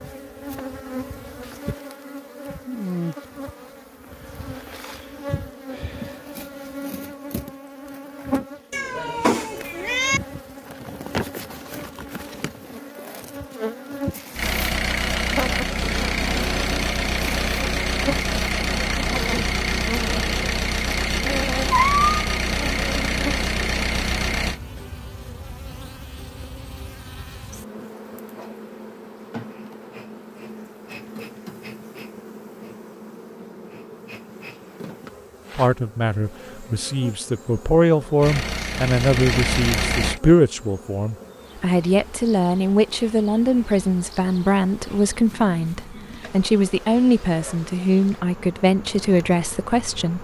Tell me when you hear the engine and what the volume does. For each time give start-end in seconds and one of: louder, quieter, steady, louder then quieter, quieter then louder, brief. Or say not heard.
14.3-24.6 steady
38.2-40.2 brief.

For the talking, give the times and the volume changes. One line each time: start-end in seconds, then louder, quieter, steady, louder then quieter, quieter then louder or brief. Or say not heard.
35.5-50.1 steady.